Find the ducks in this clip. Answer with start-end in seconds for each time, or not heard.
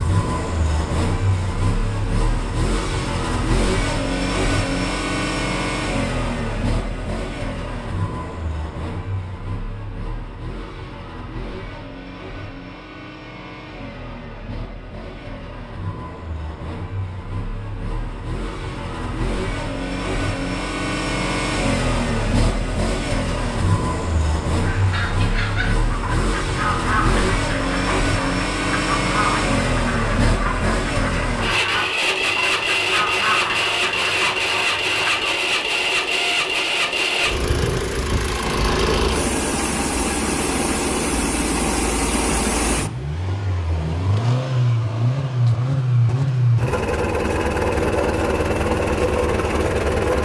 24.6-35.3.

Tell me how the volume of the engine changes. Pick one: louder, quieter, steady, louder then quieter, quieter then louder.
quieter then louder.